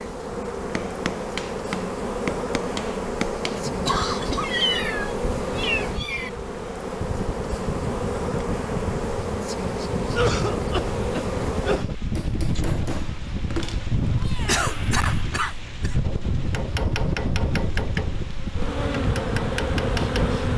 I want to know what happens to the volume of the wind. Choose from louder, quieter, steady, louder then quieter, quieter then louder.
louder.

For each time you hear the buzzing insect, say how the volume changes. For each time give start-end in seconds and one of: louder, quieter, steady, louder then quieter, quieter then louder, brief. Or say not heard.
0.0-20.5 quieter then louder.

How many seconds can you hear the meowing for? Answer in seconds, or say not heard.
3 s.